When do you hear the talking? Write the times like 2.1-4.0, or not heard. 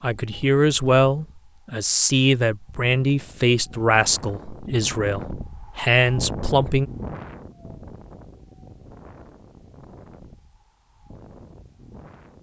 0.0-6.9.